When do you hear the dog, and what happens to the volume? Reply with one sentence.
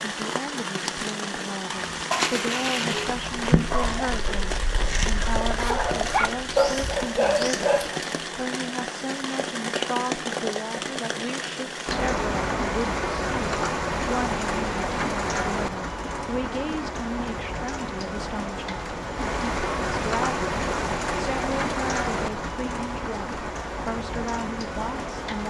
You can hear the dog from 1.6 to 8.2 s, getting quieter then louder.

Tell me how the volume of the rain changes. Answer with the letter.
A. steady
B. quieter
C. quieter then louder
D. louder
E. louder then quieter
A.